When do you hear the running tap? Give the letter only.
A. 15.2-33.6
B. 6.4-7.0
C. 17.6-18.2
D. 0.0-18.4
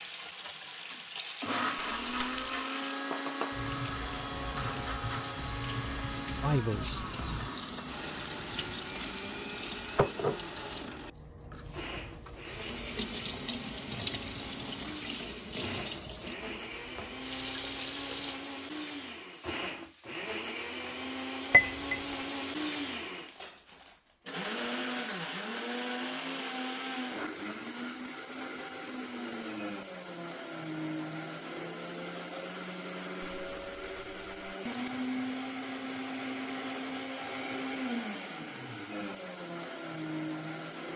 D.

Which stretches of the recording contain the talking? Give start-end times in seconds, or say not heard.
6.4-7.0.